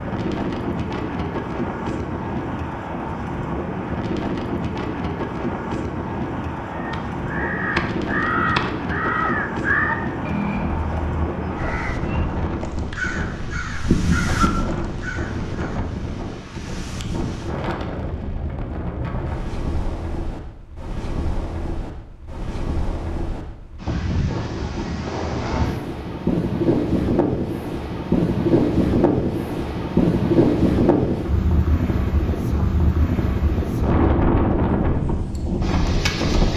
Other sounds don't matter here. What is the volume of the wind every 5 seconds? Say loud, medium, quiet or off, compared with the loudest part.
medium, medium, medium, medium, medium, loud, loud, loud.